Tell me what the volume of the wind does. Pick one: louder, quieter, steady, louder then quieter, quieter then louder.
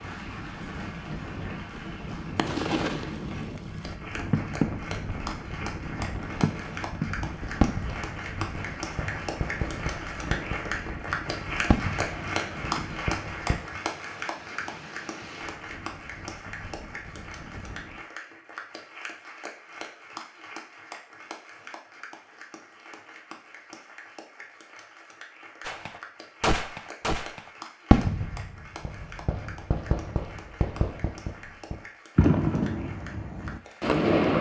quieter.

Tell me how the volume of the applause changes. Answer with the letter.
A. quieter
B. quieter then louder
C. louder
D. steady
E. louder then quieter
E.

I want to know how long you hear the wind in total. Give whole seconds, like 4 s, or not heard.
18 s.